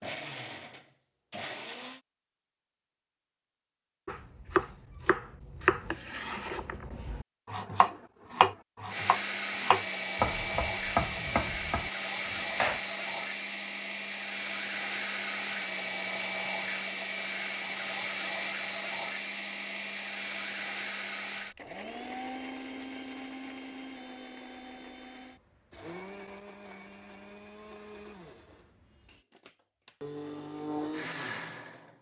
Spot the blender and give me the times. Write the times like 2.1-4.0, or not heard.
0.0-2.0, 8.8-31.9.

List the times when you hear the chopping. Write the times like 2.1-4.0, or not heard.
4.0-12.8.